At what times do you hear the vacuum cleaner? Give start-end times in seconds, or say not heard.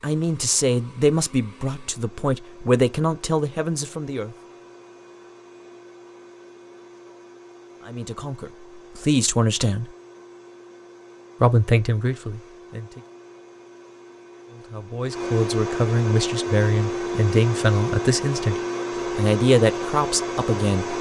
0.0-20.9.